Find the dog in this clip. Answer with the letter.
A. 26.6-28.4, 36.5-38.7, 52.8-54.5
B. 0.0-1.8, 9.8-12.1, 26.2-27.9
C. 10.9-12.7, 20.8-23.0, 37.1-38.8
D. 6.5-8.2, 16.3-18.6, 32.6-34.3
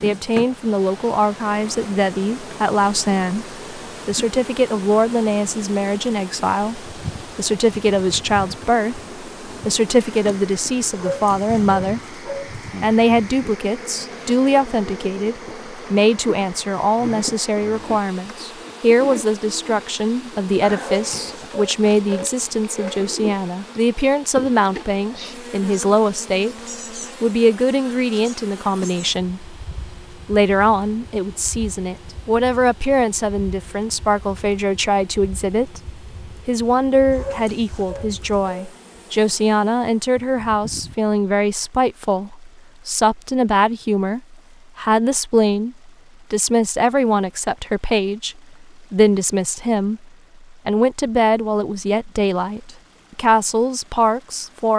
C.